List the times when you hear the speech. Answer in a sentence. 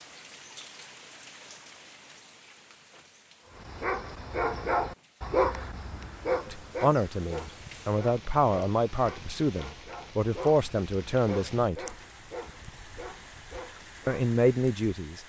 You can hear the speech from 6.5 to 11.9 s and from 14.1 to 15.2 s.